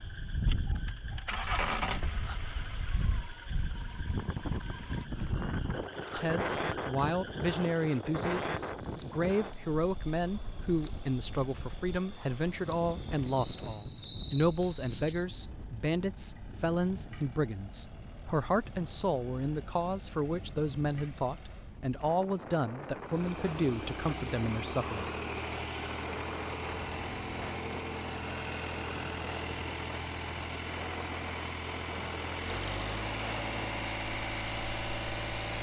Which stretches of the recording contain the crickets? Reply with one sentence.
You can hear the crickets from 0.0 to 27.6 s.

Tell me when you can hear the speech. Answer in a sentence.
The speech can be heard from 6.2 to 25.1 s.